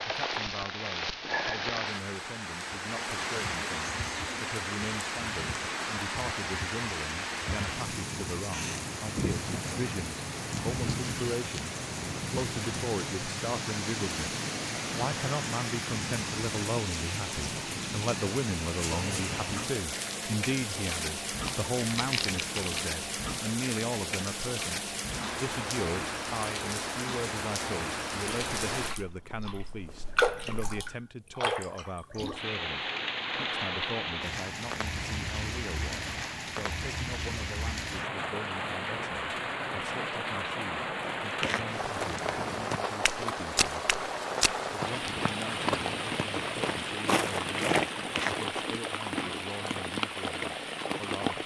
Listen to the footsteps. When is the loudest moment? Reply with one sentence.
The volume of the footsteps peaks at 48 seconds.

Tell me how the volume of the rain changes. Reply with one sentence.
The volume of the rain stays about the same.